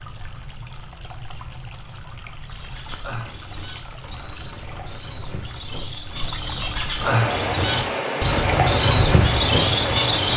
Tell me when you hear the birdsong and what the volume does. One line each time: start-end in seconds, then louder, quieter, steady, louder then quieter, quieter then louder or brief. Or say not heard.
2.4-10.3 louder.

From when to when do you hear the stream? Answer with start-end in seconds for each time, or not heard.
0.0-10.3.